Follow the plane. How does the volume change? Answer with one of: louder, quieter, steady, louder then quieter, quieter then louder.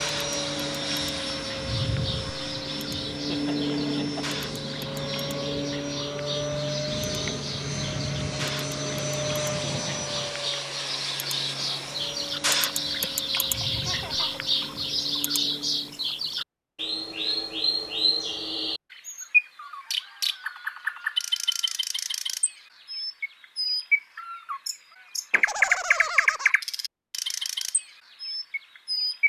quieter.